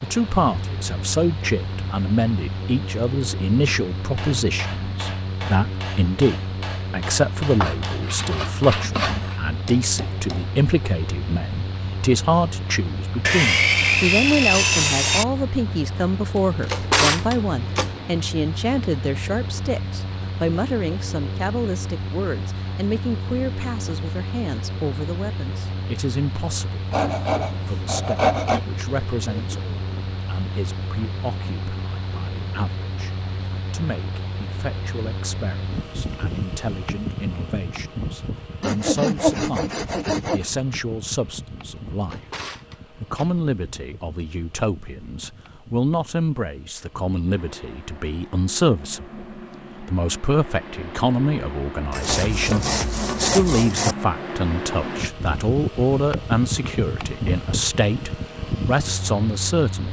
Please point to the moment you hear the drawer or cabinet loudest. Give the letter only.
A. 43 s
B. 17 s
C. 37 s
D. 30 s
B.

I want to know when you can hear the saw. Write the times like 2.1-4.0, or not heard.
7.6-9.3, 13.2-15.2, 26.9-28.6, 38.6-40.5, 51.9-54.0.